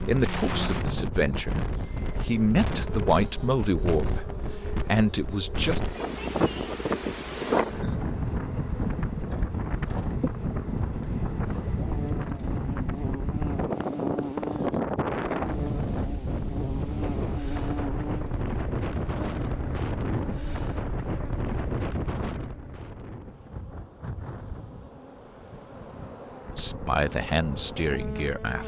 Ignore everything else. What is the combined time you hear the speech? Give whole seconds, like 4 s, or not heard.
8 s.